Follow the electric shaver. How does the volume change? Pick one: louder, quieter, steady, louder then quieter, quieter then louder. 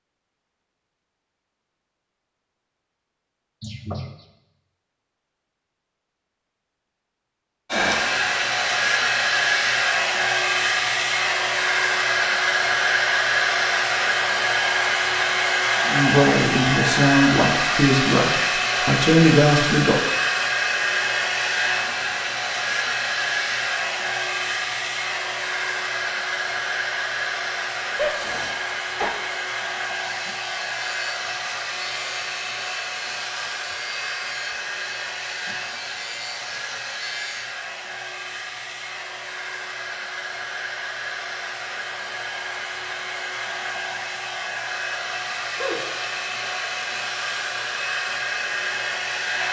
steady.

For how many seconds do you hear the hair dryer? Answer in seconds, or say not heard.
42 s.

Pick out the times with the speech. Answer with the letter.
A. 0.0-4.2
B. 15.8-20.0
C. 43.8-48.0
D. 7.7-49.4
B.